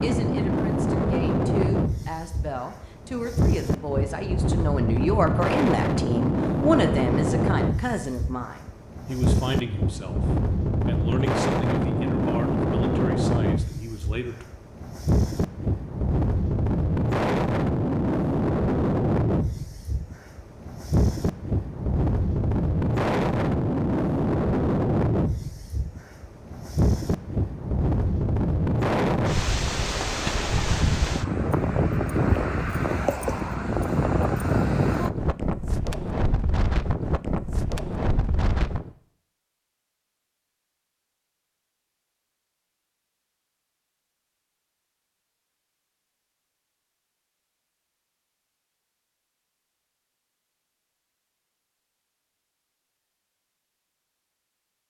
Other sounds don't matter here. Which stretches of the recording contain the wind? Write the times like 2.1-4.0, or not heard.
0.0-38.9.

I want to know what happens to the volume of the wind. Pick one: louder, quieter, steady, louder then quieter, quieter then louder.
steady.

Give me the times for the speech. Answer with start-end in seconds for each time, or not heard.
0.0-14.4.